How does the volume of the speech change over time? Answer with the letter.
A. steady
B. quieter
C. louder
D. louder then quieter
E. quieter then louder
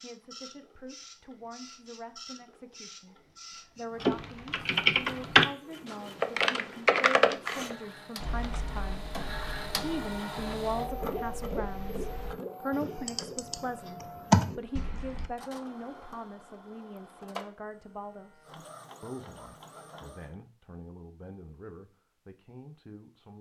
D.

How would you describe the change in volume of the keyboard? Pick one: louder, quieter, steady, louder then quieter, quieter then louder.
quieter then louder.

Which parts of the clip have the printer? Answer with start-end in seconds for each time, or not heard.
0.0-20.4.